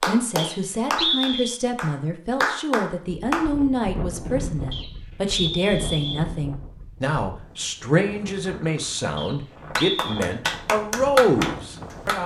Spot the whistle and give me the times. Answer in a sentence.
You can hear the whistle from 0.3 to 1.6 s, from 4.7 to 6.2 s and from 9.2 to 10.3 s.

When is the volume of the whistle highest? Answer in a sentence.
The loudest moment of the whistle is at 1 second.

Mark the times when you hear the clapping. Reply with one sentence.
You can hear the clapping from 0.0 to 3.5 s and from 9.8 to 12.2 s.